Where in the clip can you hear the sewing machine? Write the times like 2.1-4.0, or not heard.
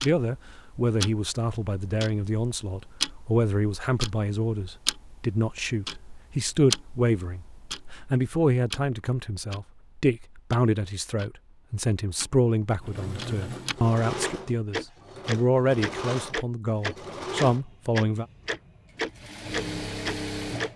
12.8-20.7.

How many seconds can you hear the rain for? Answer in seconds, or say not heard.
not heard.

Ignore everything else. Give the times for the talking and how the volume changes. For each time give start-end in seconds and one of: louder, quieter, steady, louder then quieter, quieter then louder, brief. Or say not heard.
0.0-18.2 steady.